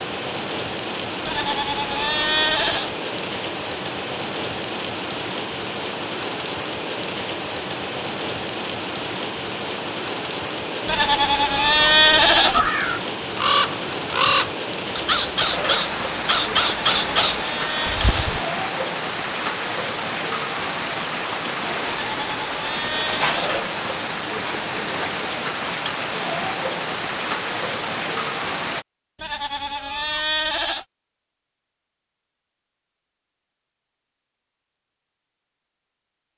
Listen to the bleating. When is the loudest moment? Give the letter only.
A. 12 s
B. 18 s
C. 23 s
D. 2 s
A.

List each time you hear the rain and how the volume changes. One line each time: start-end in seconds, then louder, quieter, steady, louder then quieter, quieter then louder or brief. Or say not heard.
0.0-28.9 steady.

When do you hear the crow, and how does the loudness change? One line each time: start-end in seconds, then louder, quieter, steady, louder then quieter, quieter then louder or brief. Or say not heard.
12.5-18.4 steady.